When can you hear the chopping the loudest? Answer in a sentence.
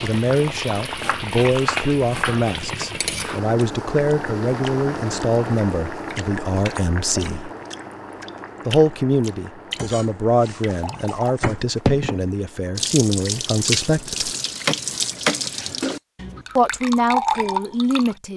The loudest moment of the chopping is at 15 seconds.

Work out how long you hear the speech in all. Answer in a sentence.
The speech can be heard for 15 seconds in total.